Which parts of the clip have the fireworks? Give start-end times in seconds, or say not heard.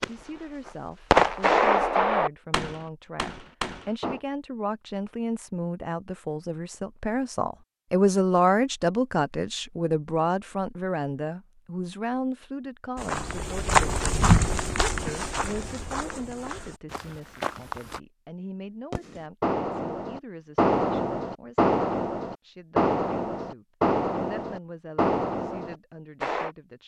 0.0-4.2, 18.9-26.5.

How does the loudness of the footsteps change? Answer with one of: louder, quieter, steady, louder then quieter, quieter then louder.
quieter.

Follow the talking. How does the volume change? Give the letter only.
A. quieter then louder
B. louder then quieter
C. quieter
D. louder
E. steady
B.